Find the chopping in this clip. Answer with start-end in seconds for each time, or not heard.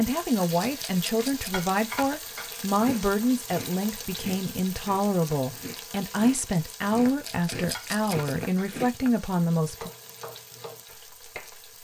9.6-11.7.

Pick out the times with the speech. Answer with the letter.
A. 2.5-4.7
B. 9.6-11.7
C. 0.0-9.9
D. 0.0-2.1
C.